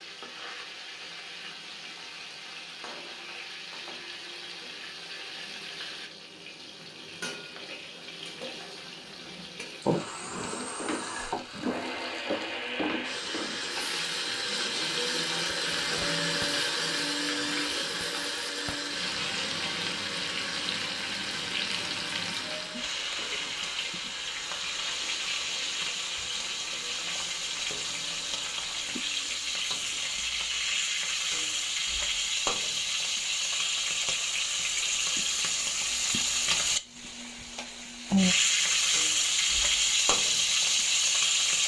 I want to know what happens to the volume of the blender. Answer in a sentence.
The loudness of the blender goes up, then down.